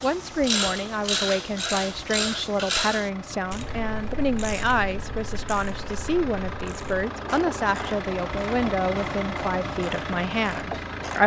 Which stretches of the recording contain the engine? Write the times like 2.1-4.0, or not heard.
0.0-11.2.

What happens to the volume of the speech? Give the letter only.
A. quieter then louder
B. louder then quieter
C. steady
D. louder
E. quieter
C.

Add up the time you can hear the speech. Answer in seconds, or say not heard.
11 s.